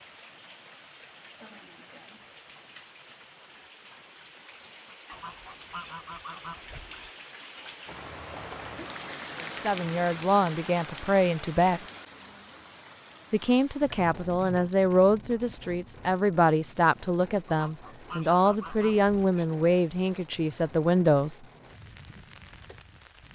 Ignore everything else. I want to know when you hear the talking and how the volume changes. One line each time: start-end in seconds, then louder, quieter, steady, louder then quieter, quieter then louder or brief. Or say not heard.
9.4-11.8 brief
13.3-21.4 steady.